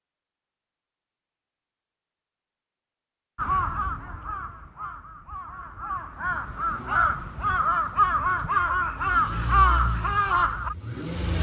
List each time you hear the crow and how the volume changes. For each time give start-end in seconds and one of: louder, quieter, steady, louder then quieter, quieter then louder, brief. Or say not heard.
3.4-10.8 louder.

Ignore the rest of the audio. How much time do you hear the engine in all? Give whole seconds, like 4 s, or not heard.
2 s.